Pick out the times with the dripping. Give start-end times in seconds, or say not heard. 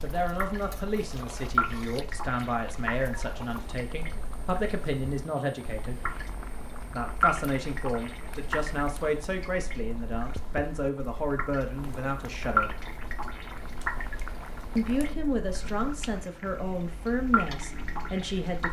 0.0-18.6.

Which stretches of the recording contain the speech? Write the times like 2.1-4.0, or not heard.
0.0-6.0, 6.9-12.8, 14.8-18.6.